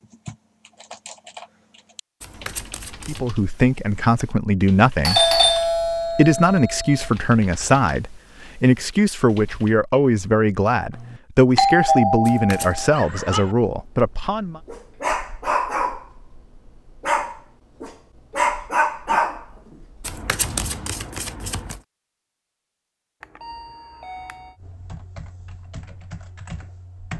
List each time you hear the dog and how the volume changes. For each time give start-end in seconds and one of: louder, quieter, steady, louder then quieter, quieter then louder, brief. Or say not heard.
12.9-20.9 louder.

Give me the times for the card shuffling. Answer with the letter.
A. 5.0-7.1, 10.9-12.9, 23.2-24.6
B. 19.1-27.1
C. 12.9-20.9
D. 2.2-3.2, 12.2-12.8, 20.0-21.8
D.